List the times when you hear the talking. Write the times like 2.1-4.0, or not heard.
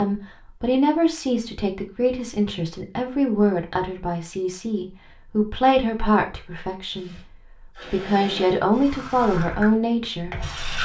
0.0-7.2, 7.9-10.3.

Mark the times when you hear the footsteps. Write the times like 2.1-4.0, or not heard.
not heard.